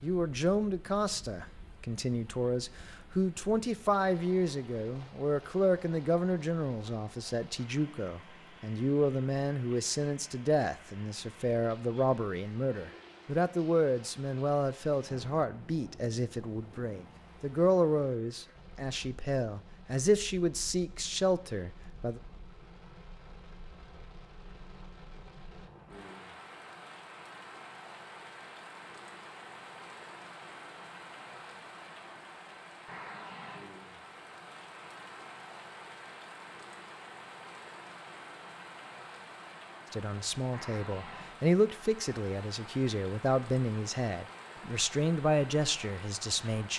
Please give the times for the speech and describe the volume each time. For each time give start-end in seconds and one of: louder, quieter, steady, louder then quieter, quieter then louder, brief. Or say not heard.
0.0-22.2 steady
39.9-46.7 steady.